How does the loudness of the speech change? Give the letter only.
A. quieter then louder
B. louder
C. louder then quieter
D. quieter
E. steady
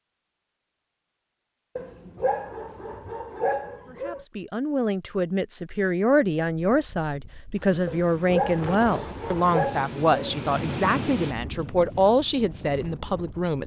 E.